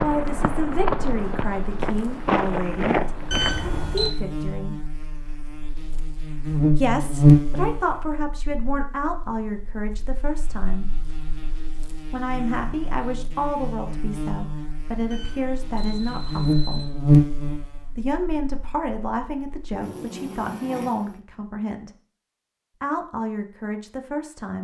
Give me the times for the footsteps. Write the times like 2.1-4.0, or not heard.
0.0-3.9.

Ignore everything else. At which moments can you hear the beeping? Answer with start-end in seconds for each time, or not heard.
3.3-4.1, 15.1-16.9.